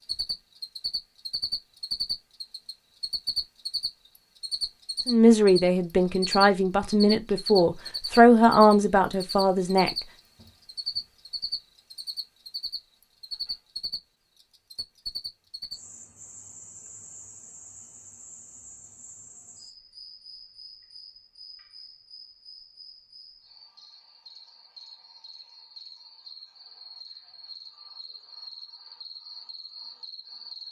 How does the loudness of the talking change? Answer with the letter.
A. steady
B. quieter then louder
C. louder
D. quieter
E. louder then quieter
E.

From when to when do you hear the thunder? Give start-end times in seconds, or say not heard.
not heard.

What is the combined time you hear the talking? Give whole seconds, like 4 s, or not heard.
5 s.